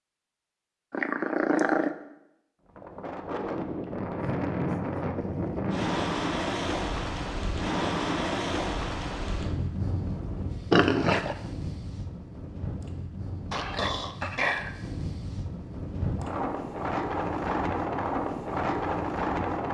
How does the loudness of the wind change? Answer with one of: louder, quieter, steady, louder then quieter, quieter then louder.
quieter then louder.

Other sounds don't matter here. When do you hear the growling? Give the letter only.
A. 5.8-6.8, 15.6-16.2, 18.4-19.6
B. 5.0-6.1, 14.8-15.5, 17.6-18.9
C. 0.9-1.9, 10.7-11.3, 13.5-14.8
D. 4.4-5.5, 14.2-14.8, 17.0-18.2
C.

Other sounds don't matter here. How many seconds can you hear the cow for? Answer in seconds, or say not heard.
not heard.